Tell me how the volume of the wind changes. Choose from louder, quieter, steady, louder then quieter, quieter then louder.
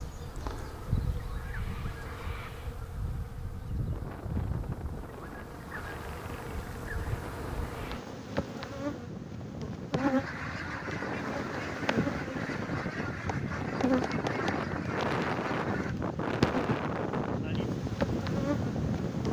louder.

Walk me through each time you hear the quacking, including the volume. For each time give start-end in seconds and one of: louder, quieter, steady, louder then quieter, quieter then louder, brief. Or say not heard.
9.9-15.9 steady.